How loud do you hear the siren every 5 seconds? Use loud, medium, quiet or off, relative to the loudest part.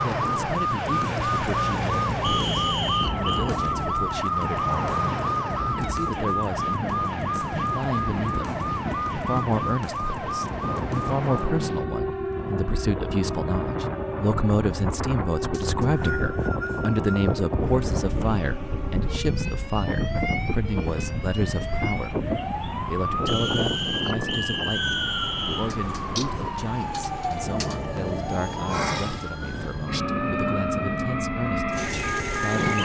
loud, loud, medium, medium, medium, medium, loud.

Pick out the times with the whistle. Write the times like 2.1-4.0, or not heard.
2.2-3.5, 15.5-17.4, 23.2-25.7.